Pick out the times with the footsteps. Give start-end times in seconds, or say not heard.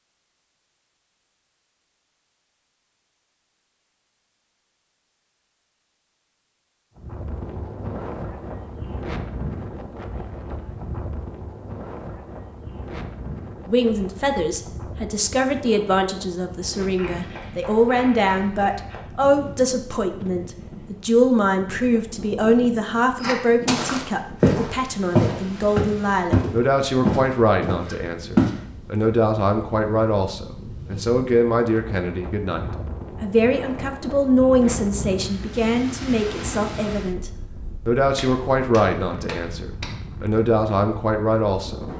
23.2-28.6.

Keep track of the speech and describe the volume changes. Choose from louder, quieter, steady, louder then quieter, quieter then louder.
steady.